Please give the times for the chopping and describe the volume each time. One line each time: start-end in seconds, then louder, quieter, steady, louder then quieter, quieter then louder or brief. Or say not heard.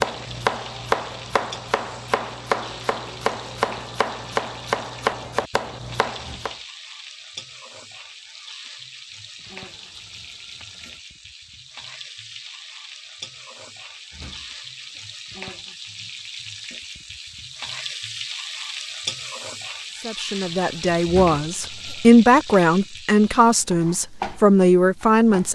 0.0-6.5 steady.